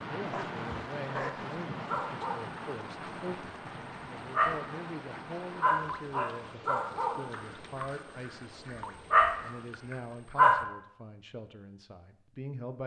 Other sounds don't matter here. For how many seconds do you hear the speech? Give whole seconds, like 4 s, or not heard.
13 s.